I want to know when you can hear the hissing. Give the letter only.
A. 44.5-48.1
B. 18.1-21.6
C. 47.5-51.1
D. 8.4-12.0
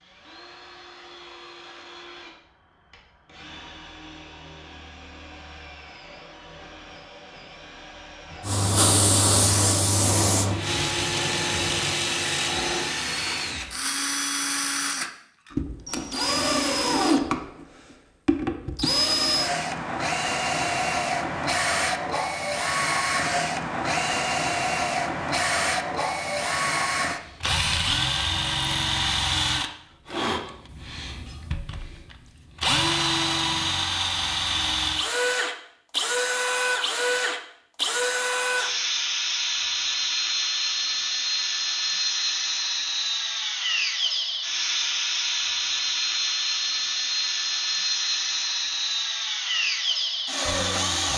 D.